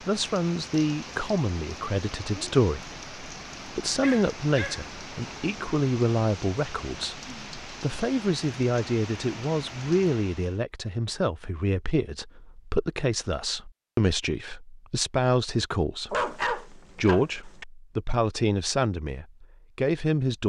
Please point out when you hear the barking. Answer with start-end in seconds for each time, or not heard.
4.0-4.8, 16.1-17.6.